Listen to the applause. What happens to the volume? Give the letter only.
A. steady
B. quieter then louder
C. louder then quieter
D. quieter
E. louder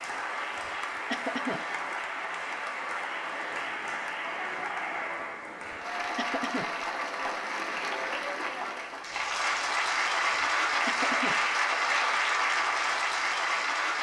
E.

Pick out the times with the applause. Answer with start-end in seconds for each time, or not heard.
0.0-13.9.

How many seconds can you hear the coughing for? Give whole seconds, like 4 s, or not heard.
3 s.